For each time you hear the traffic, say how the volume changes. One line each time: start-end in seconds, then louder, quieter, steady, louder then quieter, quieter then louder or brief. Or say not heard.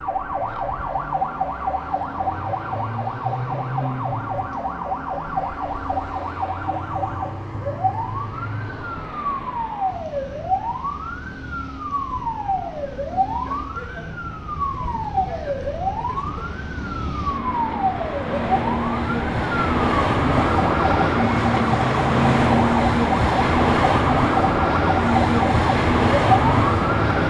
0.0-27.2 louder.